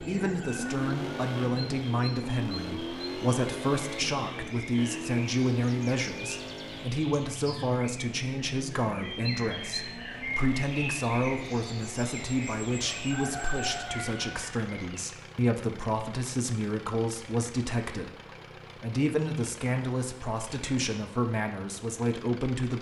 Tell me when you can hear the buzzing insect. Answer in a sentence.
The buzzing insect can't be heard in this clip.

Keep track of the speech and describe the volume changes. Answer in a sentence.
The loudness of the speech stays about the same.